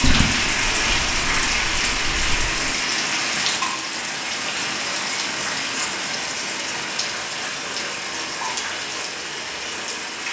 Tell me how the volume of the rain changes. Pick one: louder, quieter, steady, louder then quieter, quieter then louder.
quieter.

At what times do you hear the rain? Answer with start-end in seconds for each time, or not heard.
0.0-10.2.